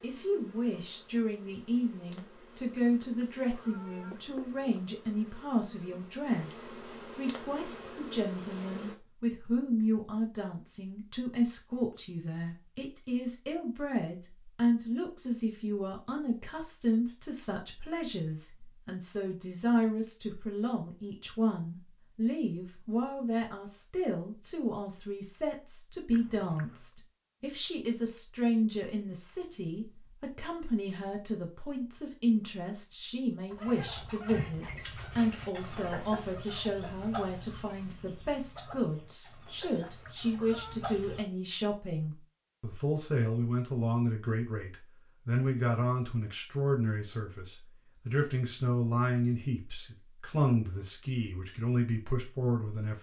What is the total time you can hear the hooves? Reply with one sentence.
You can't hear the hooves here.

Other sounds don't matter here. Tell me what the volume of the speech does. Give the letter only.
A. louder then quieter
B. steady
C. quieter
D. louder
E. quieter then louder
B.